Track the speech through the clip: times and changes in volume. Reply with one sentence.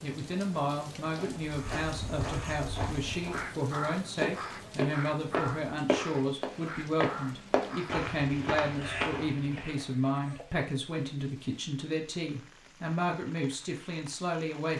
The speech can be heard from 0.0 to 14.7 s, at a steady volume.